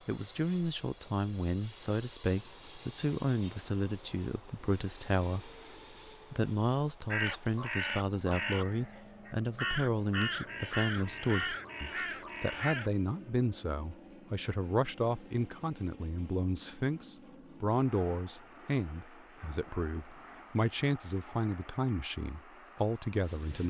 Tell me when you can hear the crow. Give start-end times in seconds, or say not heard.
7.0-12.9.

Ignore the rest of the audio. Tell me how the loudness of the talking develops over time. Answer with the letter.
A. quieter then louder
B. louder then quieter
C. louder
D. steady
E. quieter
D.